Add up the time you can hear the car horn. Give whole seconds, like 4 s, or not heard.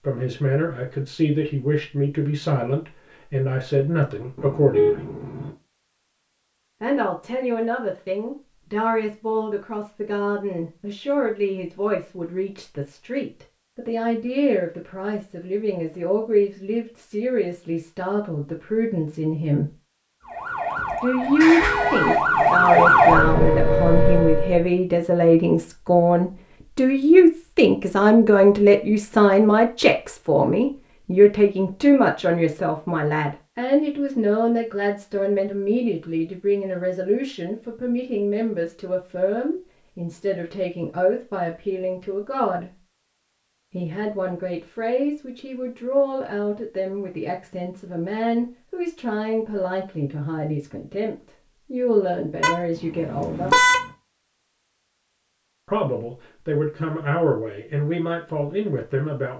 4 s.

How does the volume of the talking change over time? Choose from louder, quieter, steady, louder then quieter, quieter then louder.
louder then quieter.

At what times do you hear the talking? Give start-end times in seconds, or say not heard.
0.0-5.0, 6.8-19.7, 21.0-42.8, 43.7-53.5, 55.6-59.3.